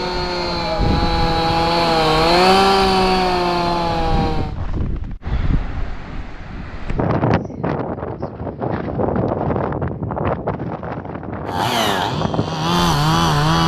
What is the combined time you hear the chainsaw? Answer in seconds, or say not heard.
7 s.